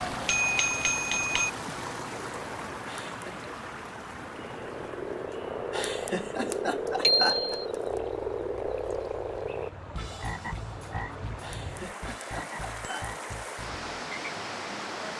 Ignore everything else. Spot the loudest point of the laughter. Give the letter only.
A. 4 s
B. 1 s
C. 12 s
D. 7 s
D.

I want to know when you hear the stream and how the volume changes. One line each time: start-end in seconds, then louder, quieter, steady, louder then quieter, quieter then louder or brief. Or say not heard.
0.0-15.1 quieter then louder.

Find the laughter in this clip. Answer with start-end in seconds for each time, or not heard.
2.9-3.4, 5.7-8.0, 11.4-13.2.